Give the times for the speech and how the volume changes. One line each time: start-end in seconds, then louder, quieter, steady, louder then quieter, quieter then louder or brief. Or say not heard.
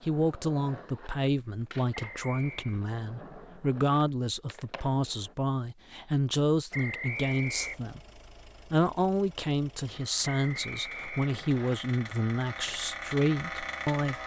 0.0-14.2 steady.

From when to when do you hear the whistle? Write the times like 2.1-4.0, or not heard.
1.9-2.8, 6.7-7.8, 10.2-11.8.